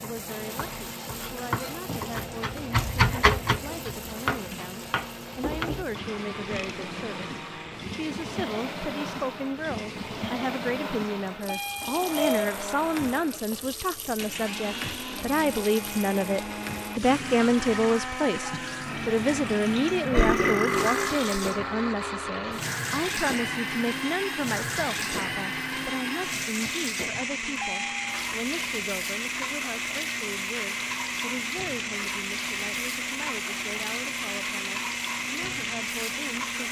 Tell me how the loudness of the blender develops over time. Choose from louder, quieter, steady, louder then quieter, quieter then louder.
louder.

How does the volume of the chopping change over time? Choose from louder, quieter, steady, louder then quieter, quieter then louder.
louder then quieter.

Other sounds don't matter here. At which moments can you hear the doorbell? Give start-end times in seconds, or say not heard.
11.4-12.5, 27.6-28.2.